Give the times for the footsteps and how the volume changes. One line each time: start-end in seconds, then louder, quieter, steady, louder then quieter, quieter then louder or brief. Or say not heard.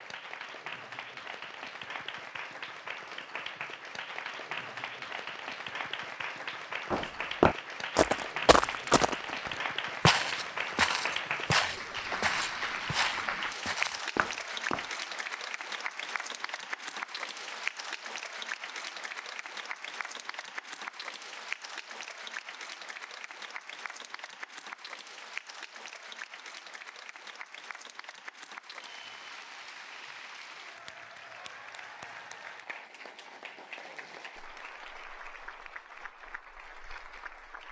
6.9-14.9 quieter.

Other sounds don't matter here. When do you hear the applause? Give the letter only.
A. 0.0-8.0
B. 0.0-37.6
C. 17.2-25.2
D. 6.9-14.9
B.